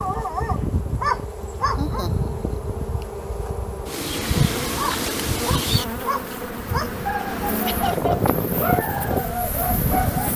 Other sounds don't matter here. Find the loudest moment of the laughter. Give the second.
8 s.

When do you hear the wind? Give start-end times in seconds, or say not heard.
4.5-10.3.